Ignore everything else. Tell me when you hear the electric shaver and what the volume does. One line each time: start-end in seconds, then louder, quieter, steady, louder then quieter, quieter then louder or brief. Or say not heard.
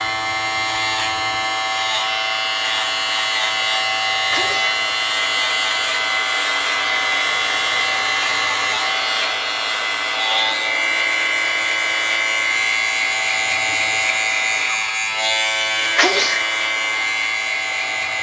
0.0-18.1 steady.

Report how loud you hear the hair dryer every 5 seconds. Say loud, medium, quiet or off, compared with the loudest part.
loud, loud, loud, medium.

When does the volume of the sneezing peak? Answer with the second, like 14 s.
16 s.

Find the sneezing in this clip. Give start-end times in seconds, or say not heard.
4.3-4.8, 15.9-16.4.